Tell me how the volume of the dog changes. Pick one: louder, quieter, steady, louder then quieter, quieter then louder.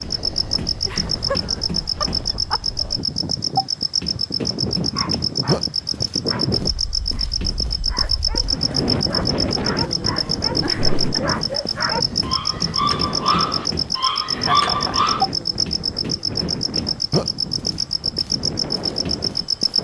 louder.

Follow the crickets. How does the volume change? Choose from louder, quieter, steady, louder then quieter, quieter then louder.
steady.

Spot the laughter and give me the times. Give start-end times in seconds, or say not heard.
0.8-1.4, 2.0-2.6, 10.6-11.2, 14.3-15.1.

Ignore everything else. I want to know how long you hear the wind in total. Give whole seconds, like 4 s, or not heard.
20 s.